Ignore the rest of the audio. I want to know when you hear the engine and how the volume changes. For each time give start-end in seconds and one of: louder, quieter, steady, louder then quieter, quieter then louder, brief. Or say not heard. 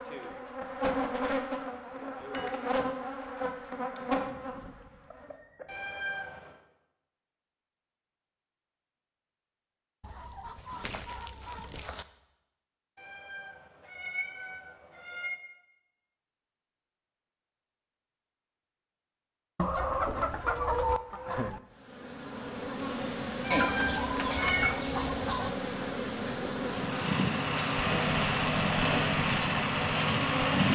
26.6-30.7 steady.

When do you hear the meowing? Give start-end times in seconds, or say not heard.
5.7-6.5, 12.9-15.3, 23.4-24.8.